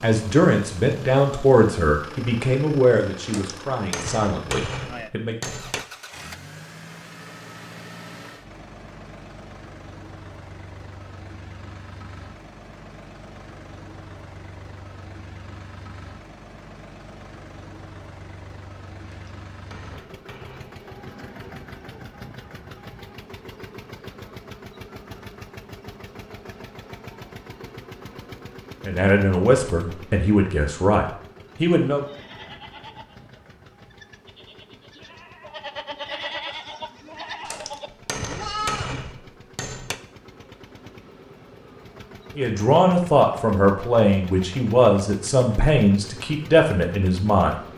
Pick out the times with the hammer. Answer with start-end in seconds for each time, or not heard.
3.2-5.8, 19.1-20.8, 37.5-40.0.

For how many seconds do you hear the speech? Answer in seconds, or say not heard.
14 s.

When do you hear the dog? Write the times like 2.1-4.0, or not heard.
not heard.